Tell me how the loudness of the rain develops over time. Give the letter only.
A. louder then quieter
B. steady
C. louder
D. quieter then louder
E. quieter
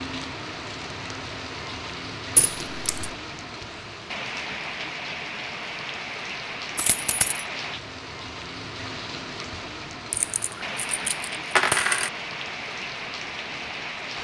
B.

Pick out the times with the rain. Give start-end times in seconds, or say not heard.
0.0-14.1.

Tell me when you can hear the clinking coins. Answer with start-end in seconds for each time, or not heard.
2.4-3.1, 6.8-7.5, 10.1-12.1.